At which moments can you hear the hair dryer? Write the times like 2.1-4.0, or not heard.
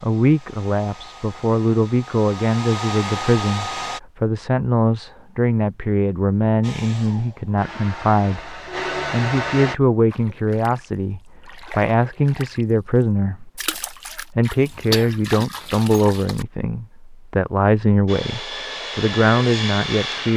0.0-4.0, 6.6-9.8, 18.1-20.3.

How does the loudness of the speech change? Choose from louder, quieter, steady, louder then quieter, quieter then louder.
steady.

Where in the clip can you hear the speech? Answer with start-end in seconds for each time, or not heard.
0.0-20.3.